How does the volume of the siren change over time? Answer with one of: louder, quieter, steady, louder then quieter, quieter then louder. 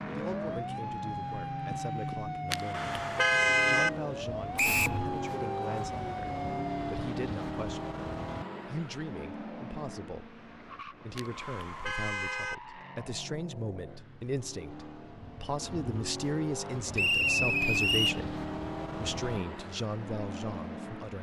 steady.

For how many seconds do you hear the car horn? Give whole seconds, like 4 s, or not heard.
3 s.